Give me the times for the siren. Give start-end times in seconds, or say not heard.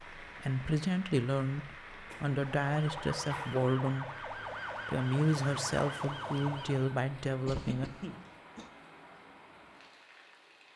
2.2-7.0.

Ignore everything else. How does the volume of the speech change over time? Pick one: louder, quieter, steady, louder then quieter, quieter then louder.
steady.